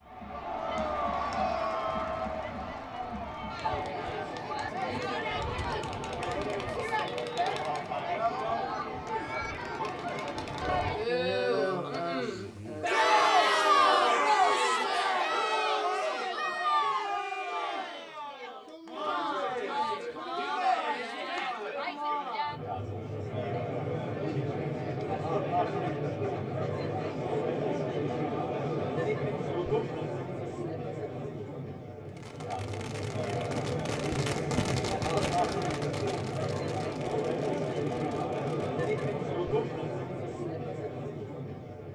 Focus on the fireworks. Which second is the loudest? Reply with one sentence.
The volume of the fireworks peaks at 35 seconds.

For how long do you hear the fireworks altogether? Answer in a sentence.
The fireworks can be heard for 7 seconds in total.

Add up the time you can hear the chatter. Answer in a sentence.
You can hear the chatter for 42 seconds altogether.